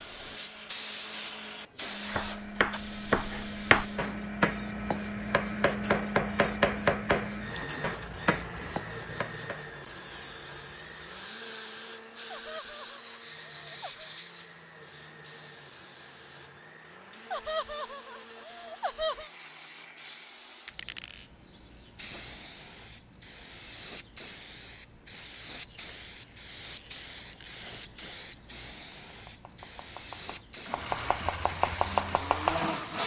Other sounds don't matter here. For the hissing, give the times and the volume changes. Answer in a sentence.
You can hear the hissing from 0.0 to 33.0 s, at a steady volume.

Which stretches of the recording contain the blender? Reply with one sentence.
The blender can be heard from 0.0 to 20.4 s and from 30.6 to 33.0 s.